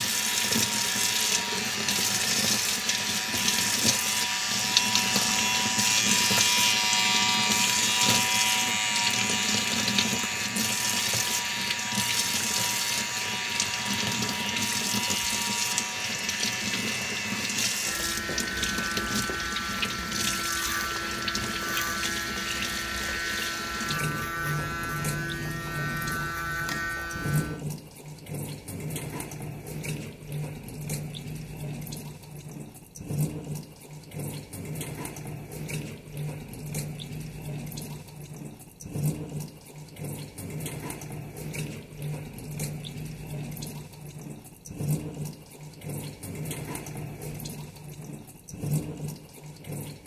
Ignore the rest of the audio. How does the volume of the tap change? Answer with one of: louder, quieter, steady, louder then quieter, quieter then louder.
quieter.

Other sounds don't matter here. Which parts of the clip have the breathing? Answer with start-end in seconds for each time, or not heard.
not heard.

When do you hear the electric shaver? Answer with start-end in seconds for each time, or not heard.
0.0-27.6.